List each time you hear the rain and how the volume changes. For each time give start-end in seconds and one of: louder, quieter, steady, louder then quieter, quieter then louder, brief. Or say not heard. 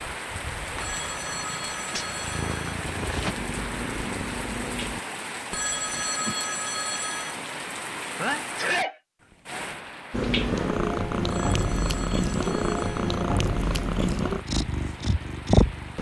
0.0-15.9 quieter.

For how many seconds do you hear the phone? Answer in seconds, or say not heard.
6 s.